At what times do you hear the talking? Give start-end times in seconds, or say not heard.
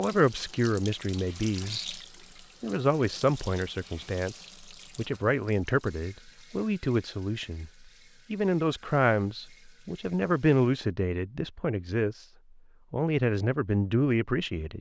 0.0-2.0, 2.6-7.7, 8.3-12.2, 12.9-14.7.